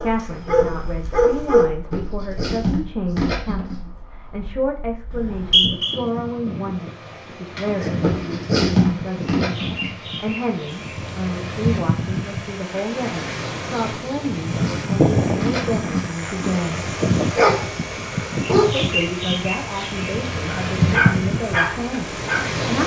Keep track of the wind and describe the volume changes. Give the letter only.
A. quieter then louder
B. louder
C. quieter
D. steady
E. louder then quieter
B.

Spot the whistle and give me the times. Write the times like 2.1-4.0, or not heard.
5.1-6.0.